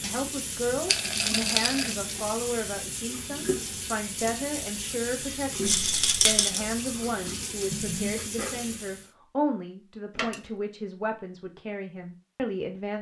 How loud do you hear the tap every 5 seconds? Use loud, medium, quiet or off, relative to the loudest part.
loud, loud, off.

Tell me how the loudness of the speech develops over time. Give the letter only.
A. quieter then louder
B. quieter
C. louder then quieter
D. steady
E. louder
D.